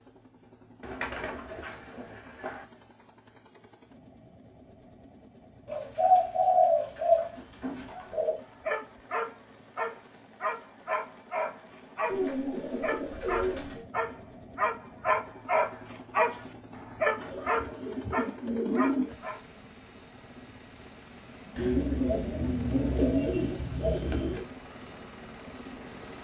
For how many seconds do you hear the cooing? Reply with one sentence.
You can hear the cooing for 11 seconds altogether.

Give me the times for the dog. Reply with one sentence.
The dog can be heard from 7.8 to 19.4 s.